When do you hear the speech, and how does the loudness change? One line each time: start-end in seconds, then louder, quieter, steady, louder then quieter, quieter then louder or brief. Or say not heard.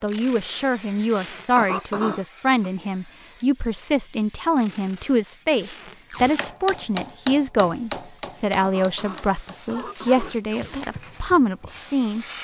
0.0-12.2 steady.